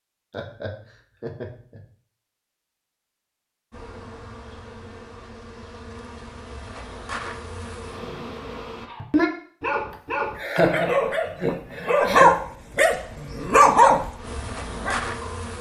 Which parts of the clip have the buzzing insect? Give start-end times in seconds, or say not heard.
3.7-8.9, 13.0-15.5.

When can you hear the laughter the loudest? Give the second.
11 s.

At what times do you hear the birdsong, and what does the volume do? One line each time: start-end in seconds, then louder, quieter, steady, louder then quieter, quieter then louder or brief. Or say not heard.
not heard.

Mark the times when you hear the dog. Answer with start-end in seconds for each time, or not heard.
8.8-15.3.